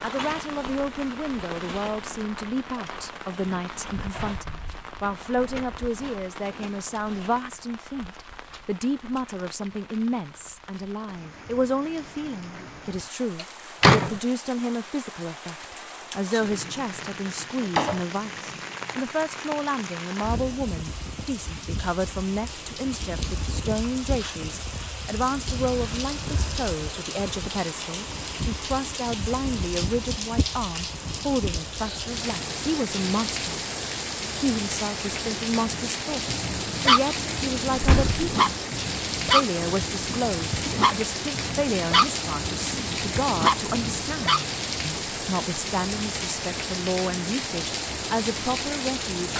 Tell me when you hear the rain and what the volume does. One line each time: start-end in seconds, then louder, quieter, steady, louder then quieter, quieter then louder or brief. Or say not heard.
0.0-49.3 louder.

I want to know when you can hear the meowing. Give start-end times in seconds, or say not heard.
not heard.